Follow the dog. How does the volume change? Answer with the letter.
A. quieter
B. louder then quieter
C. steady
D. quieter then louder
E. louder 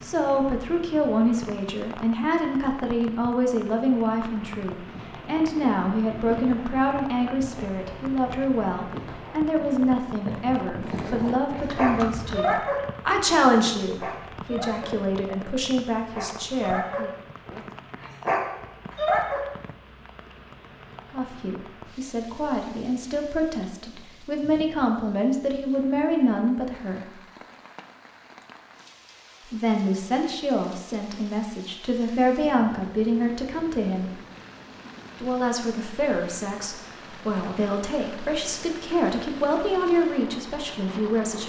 D.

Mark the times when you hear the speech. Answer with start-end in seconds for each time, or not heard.
0.0-17.1, 21.1-27.1, 29.5-34.1, 35.2-41.4.